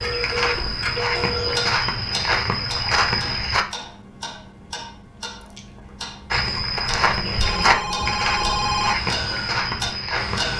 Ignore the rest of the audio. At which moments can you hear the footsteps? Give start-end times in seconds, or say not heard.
0.0-3.6, 6.3-10.5.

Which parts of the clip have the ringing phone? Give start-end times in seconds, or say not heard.
0.0-1.7, 7.0-8.9.